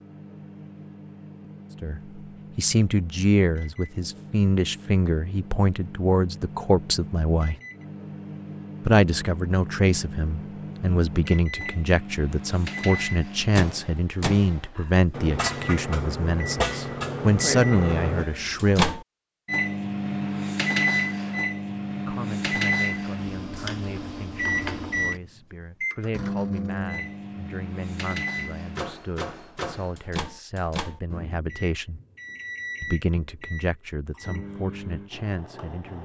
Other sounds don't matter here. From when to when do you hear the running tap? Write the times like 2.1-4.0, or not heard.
not heard.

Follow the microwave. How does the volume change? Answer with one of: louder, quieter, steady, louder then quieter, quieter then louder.
louder then quieter.